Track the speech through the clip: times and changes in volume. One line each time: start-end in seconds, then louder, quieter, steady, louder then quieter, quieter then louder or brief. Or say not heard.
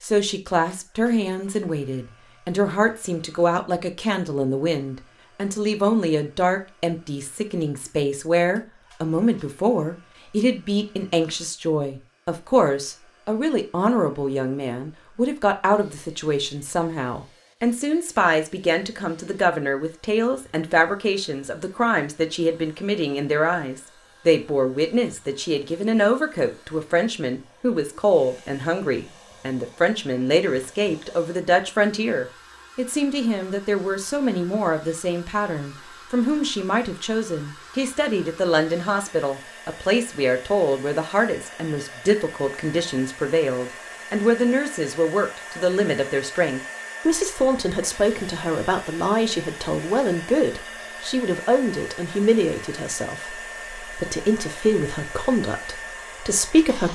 0.0-56.8 steady.